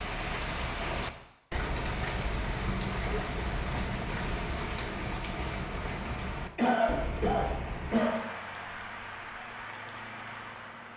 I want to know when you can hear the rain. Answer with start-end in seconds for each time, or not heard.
0.0-10.9.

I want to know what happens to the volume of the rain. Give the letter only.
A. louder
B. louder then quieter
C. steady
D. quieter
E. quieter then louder
D.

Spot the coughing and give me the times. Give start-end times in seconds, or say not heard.
1.5-2.1, 6.5-8.6.